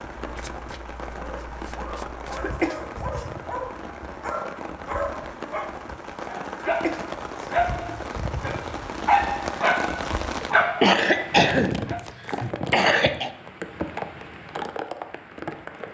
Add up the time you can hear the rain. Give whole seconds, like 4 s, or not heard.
16 s.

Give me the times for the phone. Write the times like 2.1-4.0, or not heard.
not heard.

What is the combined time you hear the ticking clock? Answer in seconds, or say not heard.
not heard.